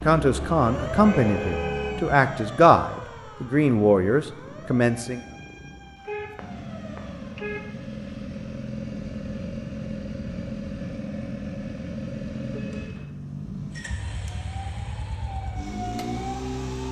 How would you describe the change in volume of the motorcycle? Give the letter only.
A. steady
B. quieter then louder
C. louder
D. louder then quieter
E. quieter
B.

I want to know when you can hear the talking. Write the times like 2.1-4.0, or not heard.
0.1-5.2.